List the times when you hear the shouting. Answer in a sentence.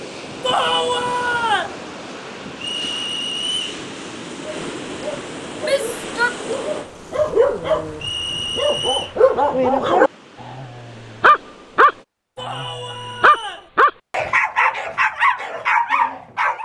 You can hear the shouting from 0.4 to 1.8 s, from 5.6 to 6.3 s and from 12.3 to 13.7 s.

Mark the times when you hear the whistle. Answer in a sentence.
You can hear the whistle from 2.6 to 3.8 s, from 8.0 to 9.2 s and from 12.4 to 13.7 s.